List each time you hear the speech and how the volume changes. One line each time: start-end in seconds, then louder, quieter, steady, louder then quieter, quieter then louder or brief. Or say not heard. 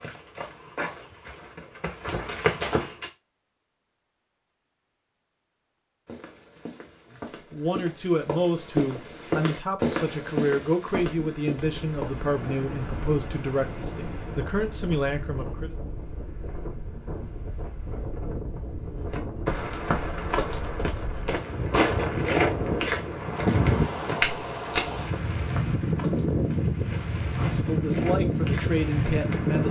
7.5-15.8 steady
27.3-29.6 brief.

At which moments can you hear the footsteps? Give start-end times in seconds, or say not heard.
0.0-3.1, 6.0-12.7, 19.1-29.6.